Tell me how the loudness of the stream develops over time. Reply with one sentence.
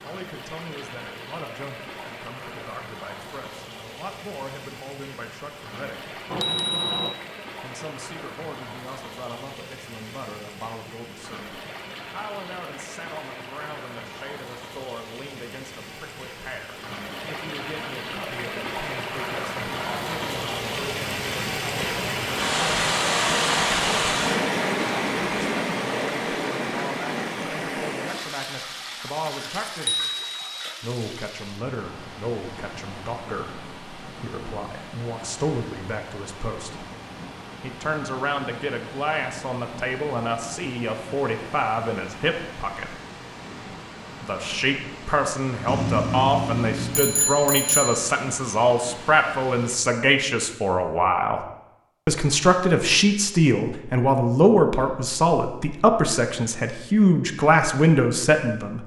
The loudness of the stream goes up, then down.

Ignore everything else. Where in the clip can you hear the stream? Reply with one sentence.
You can hear the stream from 0.0 to 49.8 s.